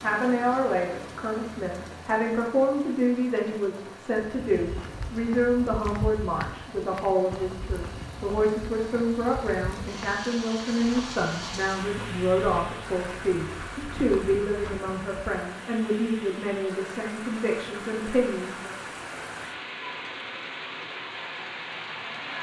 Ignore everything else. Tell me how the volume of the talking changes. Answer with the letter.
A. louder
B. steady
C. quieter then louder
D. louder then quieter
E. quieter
B.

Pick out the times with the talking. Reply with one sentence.
The talking can be heard from 0.0 to 18.8 s.